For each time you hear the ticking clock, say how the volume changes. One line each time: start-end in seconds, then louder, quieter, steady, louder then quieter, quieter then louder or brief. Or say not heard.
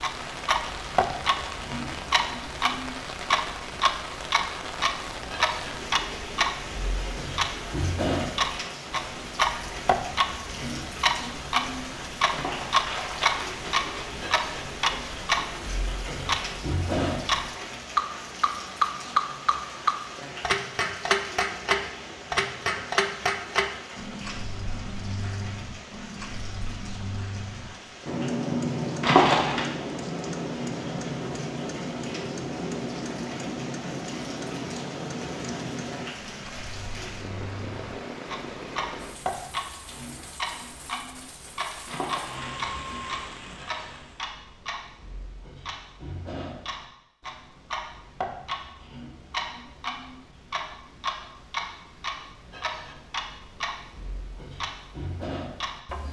0.0-56.0 quieter.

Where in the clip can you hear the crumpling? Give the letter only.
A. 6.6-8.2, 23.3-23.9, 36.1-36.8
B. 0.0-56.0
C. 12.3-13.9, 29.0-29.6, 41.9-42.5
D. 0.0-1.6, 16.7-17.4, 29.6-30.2
C.